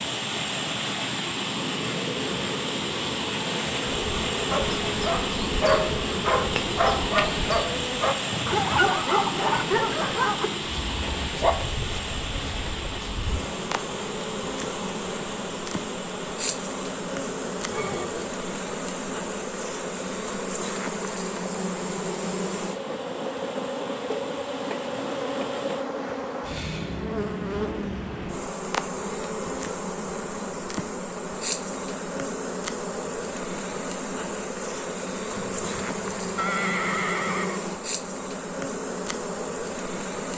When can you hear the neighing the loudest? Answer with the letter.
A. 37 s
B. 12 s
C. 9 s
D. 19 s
A.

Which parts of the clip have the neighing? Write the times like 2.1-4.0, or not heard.
8.3-8.9, 17.7-18.2, 35.3-37.6.